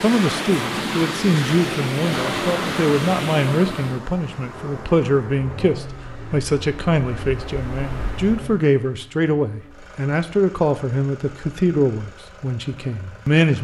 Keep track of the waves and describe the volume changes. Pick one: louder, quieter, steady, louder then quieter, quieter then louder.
quieter.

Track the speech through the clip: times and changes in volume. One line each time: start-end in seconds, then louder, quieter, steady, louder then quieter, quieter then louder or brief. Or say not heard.
0.0-13.5 steady.